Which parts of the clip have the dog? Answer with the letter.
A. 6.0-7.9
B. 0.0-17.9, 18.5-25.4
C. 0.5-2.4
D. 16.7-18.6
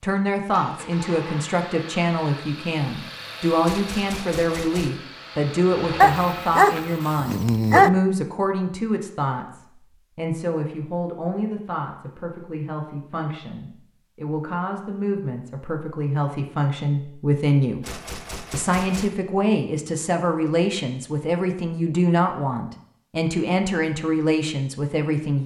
A.